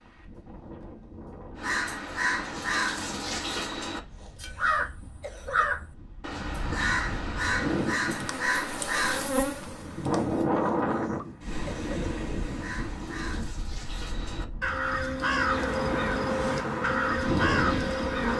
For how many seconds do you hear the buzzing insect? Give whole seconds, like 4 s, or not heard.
6 s.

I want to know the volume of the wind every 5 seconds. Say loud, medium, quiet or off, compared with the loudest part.
quiet, medium, loud, loud.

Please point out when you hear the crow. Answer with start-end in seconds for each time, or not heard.
1.6-9.3, 12.4-18.3.